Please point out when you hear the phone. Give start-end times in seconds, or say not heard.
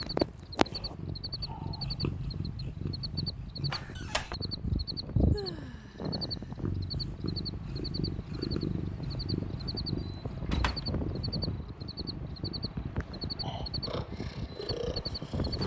not heard.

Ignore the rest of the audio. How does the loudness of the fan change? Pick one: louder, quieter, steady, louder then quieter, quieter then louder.
louder.